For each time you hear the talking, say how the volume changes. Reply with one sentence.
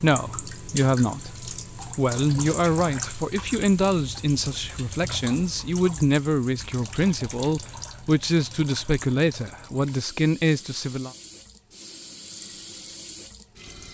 The talking can be heard from 0.0 to 11.1 s, at a steady volume.